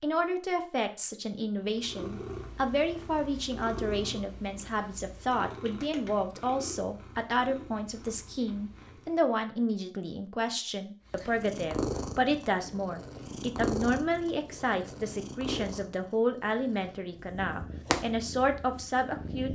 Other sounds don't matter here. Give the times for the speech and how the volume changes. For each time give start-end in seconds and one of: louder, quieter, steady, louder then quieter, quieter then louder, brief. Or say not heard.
0.0-19.4 steady.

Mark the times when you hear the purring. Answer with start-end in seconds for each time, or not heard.
1.6-9.4, 11.1-19.4.